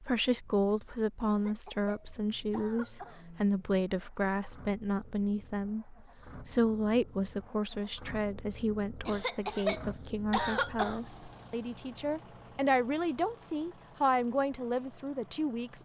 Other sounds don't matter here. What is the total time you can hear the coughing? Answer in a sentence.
You can hear the coughing for 4 seconds altogether.